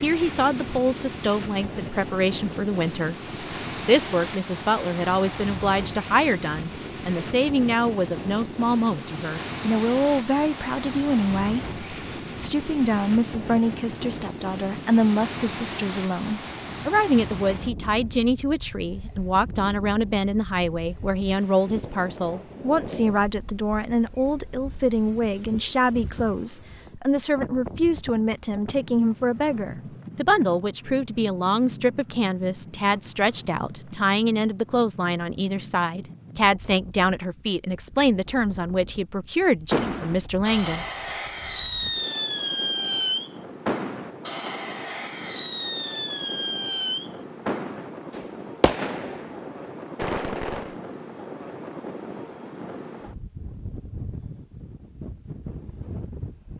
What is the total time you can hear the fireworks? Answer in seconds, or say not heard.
11 s.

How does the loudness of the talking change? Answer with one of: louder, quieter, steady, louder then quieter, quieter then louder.
steady.